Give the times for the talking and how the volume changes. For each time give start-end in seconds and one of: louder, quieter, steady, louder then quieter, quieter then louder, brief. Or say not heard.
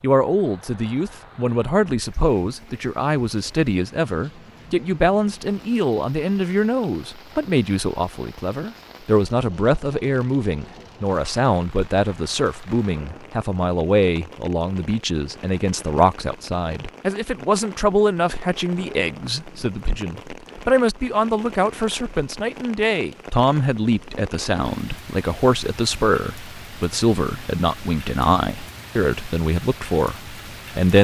0.0-30.9 steady.